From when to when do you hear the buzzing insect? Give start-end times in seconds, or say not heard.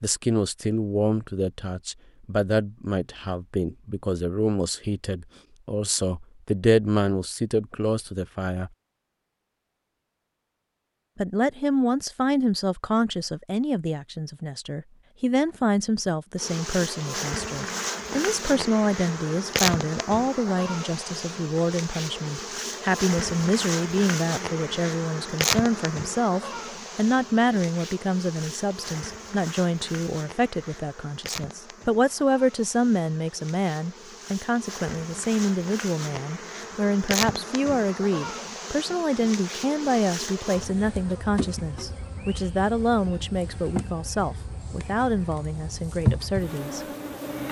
16.4-47.4.